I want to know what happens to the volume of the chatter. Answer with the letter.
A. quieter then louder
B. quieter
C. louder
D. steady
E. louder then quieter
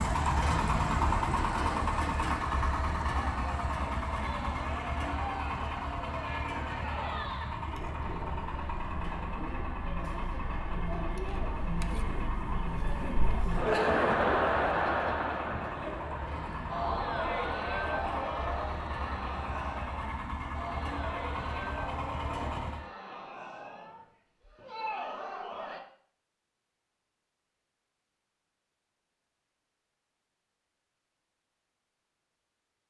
E.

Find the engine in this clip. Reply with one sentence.
The engine can be heard from 0.0 to 22.9 s.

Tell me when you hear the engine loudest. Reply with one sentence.
The loudest moment of the engine is at 1 second.